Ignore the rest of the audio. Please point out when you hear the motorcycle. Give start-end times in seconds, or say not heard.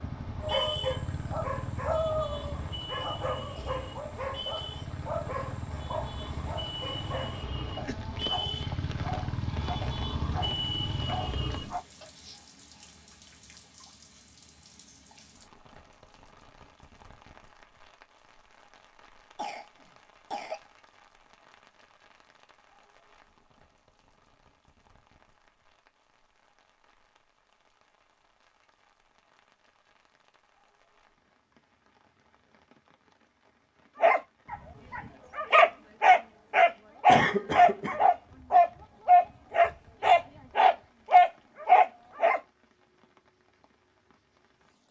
0.0-11.8.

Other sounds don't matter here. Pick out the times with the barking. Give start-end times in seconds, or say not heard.
0.4-12.4, 34.0-42.4.